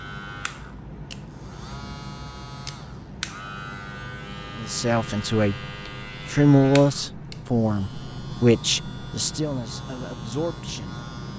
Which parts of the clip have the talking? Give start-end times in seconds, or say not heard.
4.5-5.5, 6.2-11.3.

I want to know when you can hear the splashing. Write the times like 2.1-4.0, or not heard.
not heard.